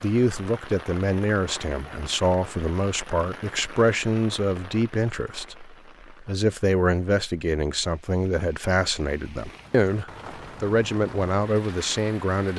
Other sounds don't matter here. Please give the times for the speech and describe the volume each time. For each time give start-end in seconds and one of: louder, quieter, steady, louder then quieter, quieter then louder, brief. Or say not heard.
0.0-12.5 steady.